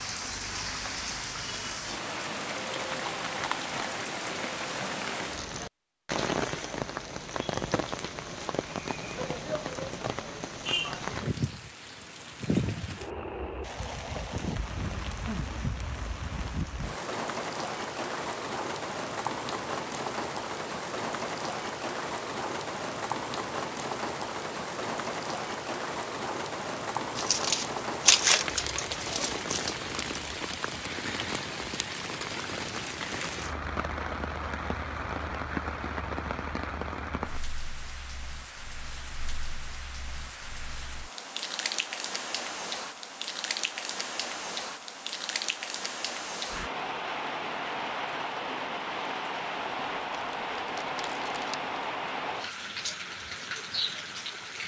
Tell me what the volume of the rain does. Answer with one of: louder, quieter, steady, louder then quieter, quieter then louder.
steady.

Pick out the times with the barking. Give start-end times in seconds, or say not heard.
not heard.